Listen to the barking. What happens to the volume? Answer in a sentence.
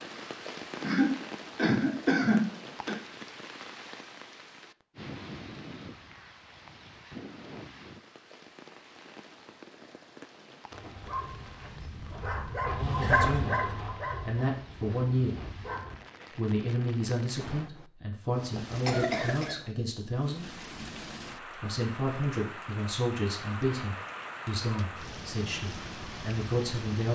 The volume of the barking goes up, then down.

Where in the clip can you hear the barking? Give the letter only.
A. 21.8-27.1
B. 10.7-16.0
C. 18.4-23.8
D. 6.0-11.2
B.